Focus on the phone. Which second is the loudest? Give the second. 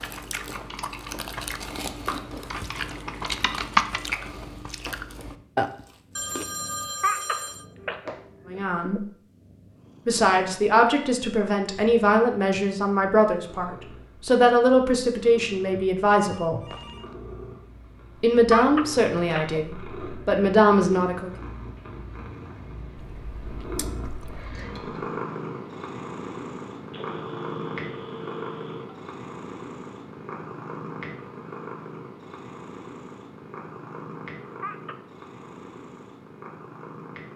7 s.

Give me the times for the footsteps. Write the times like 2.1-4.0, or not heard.
not heard.